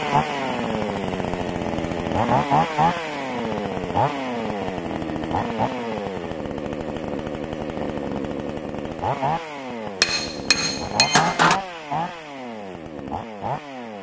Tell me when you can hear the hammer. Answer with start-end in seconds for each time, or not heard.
10.0-11.6.